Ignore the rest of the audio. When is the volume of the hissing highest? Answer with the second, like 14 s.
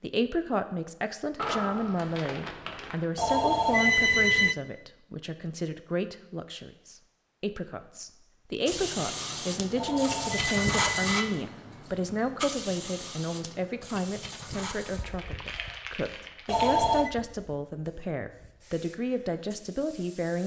11 s.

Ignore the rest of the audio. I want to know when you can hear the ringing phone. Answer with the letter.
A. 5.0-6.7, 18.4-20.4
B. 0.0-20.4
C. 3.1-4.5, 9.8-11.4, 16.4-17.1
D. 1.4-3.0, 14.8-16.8
C.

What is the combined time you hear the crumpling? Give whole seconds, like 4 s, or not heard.
4 s.